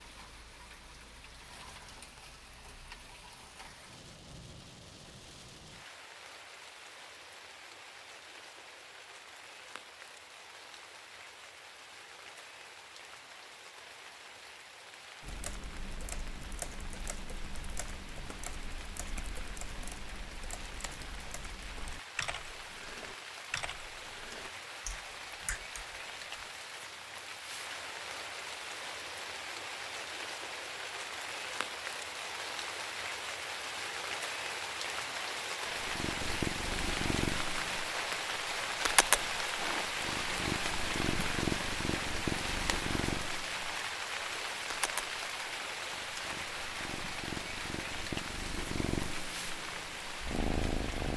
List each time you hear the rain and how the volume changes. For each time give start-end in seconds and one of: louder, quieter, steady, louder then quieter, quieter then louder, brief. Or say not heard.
0.0-51.1 louder.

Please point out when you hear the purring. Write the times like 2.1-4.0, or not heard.
35.6-51.1.